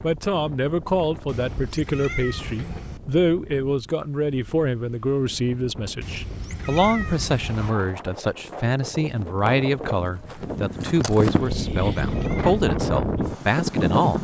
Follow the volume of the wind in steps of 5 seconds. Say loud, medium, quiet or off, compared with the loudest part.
quiet, medium, loud.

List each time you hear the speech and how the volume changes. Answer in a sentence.
You can hear the speech from 0.0 to 14.1 s, at a steady volume.